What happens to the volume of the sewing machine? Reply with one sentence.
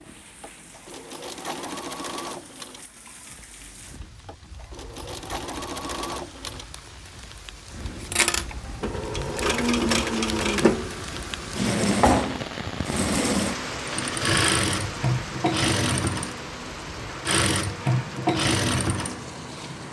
The volume of the sewing machine goes up.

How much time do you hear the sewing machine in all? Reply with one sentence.
The sewing machine can be heard for 20 seconds in total.